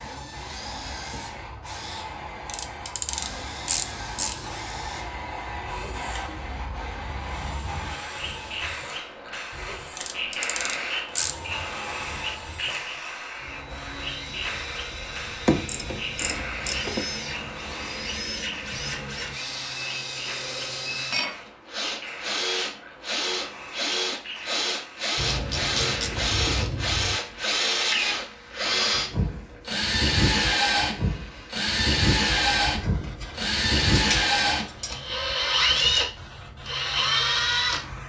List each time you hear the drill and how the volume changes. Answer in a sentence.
The drill can be heard from 0.0 to 37.8 s, getting louder.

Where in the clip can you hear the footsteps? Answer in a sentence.
The footsteps can't be heard in this clip.